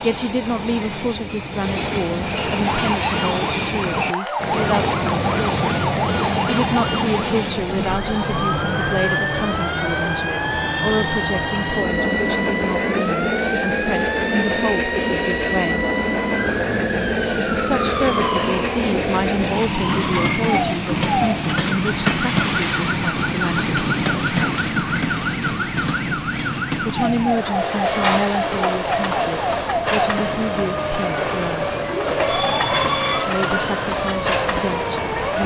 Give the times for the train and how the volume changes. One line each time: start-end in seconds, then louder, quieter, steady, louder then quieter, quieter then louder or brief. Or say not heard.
0.0-35.4 steady.